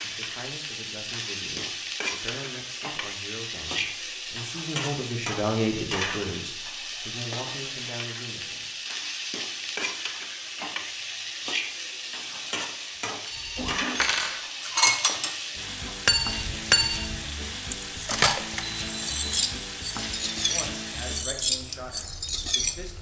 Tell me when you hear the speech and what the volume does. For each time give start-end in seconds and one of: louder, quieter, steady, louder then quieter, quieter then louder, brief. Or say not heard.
0.0-8.7 louder then quieter
20.4-22.9 brief.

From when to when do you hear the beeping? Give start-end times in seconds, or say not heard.
18.6-19.6.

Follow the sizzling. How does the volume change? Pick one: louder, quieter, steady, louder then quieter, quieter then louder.
steady.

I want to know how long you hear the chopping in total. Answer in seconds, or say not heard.
not heard.